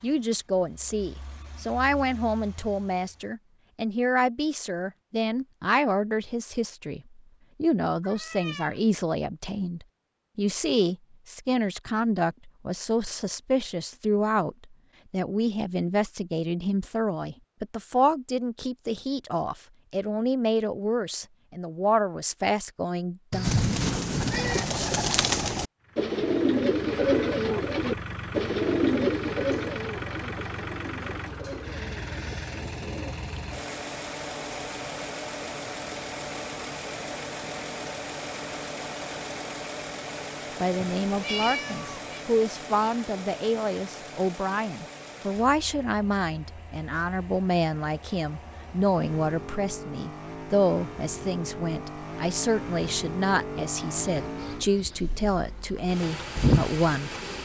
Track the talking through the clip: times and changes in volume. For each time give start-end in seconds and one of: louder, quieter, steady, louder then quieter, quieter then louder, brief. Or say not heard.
0.0-23.6 steady
40.6-57.1 steady.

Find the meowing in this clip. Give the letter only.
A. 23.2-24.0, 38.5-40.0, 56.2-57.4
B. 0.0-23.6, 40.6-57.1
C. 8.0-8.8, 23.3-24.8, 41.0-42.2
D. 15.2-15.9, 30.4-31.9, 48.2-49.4
C.